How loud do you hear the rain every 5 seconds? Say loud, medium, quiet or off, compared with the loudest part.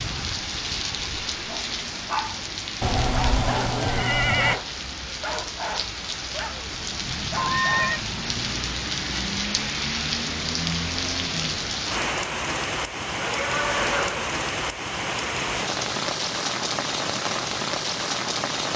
medium, loud, loud, loud.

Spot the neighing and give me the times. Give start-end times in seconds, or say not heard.
2.8-4.6, 7.3-8.0, 13.2-14.3.